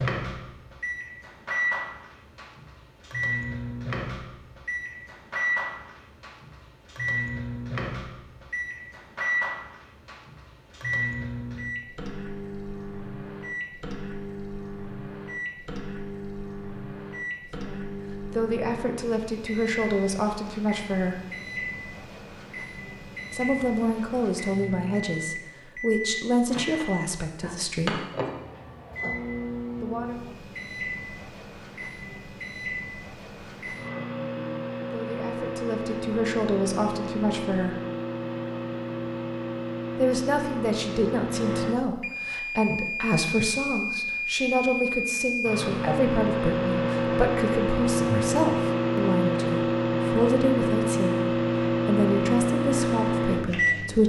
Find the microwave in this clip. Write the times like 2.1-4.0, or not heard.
0.0-54.0.